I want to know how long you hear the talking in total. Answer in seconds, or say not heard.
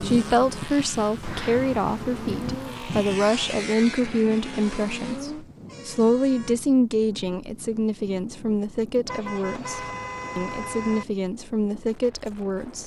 13 s.